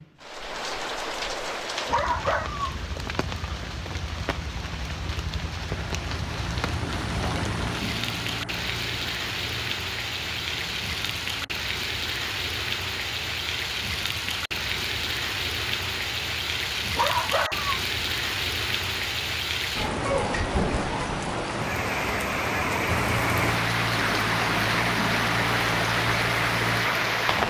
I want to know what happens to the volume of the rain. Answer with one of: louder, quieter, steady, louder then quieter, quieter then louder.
louder.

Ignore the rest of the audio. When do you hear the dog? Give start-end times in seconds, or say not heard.
1.7-2.7, 16.8-17.8.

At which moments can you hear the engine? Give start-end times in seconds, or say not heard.
5.7-11.5, 22.9-27.4.